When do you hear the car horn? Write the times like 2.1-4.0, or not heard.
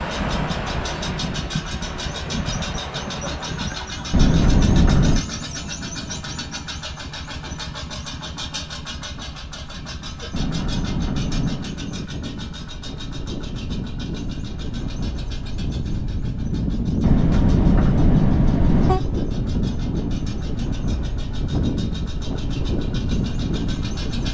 4.1-5.2, 10.3-11.8, 17.0-19.0.